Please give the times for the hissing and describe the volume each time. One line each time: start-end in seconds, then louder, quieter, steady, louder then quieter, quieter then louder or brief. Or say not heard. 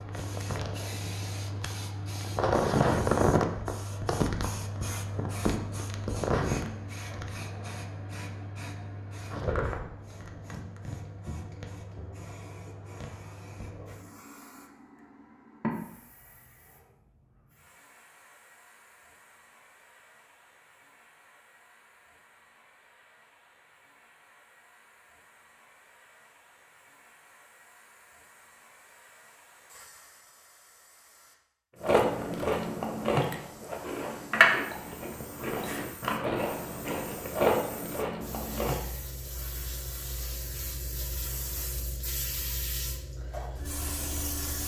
0.0-44.6 quieter then louder.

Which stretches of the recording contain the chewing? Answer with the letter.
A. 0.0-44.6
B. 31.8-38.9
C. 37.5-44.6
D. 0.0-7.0
B.